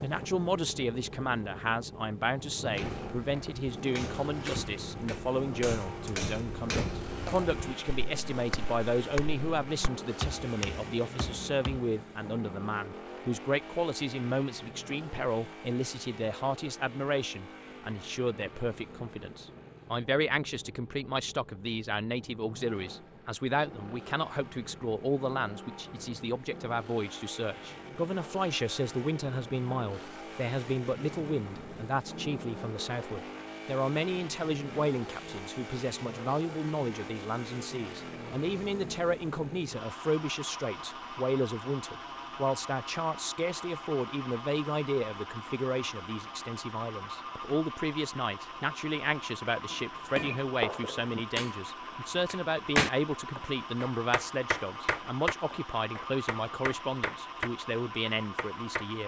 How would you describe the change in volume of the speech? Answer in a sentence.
The loudness of the speech stays about the same.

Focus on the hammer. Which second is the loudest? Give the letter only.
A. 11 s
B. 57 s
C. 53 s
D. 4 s
C.